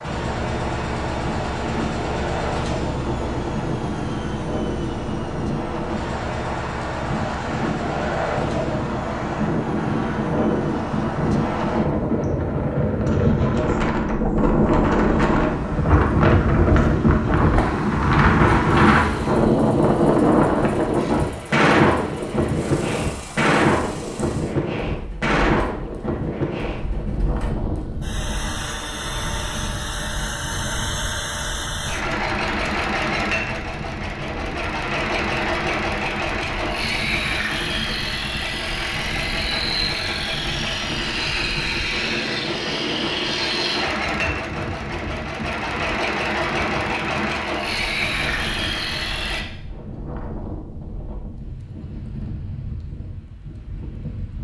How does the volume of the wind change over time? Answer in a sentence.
The loudness of the wind goes up, then down.